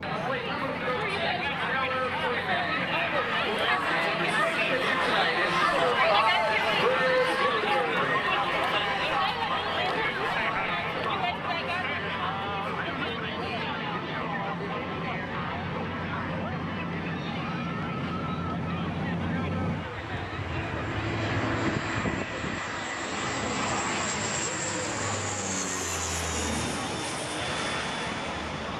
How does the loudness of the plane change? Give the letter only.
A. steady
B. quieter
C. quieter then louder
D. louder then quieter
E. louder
E.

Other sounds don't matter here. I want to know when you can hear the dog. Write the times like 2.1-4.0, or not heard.
not heard.